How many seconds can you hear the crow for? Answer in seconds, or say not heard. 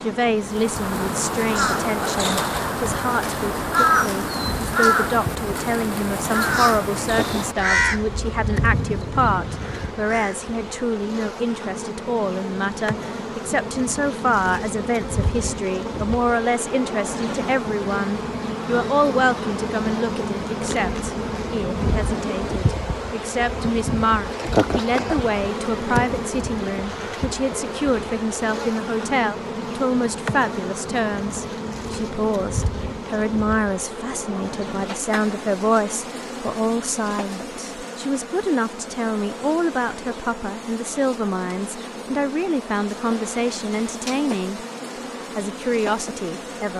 10 s.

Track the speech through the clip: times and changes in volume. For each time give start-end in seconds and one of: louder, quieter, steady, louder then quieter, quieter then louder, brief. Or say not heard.
0.0-44.6 steady
45.4-46.7 brief.